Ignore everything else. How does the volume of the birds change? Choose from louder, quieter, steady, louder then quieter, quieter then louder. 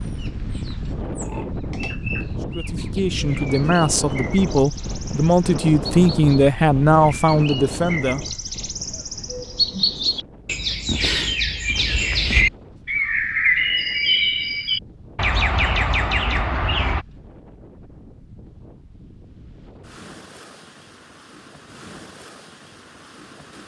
louder.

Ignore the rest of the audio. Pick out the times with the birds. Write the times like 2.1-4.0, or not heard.
0.0-17.1.